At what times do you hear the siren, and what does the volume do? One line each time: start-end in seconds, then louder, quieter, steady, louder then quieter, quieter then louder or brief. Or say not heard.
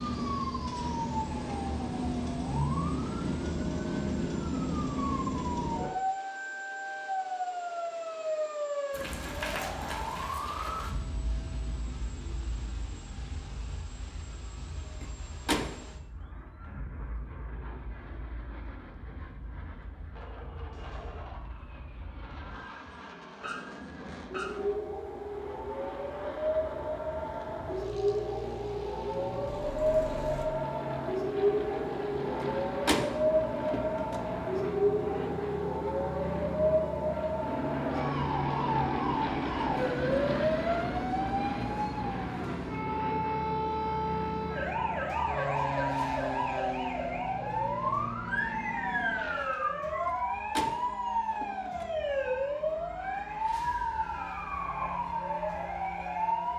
0.0-56.5 quieter then louder.